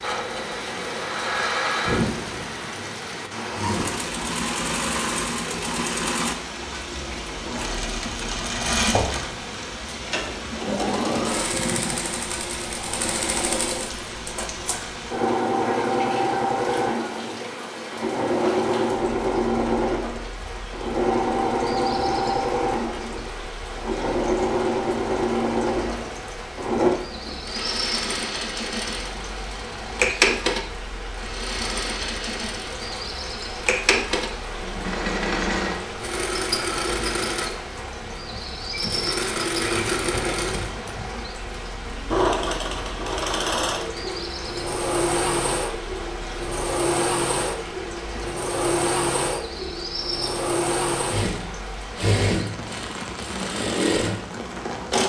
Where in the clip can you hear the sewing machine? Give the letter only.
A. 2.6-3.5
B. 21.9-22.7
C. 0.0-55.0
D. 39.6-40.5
C.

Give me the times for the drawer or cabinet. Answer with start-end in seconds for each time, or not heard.
39.6-40.5.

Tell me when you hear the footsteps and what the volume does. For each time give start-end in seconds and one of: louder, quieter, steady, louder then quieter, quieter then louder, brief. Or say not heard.
not heard.